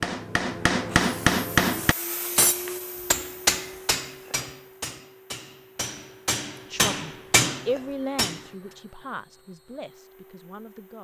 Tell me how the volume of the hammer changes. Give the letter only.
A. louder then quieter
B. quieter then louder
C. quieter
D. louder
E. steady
B.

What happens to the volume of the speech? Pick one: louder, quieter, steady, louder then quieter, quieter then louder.
quieter.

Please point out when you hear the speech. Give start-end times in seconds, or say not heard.
6.7-10.9.